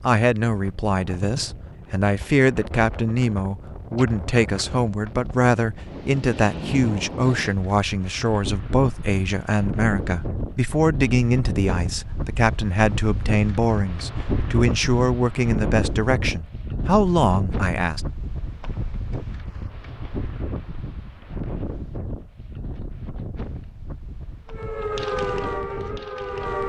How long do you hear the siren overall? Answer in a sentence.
The siren can be heard for 2 seconds in total.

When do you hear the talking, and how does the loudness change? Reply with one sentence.
The talking can be heard from 0.0 to 18.0 s, at a steady volume.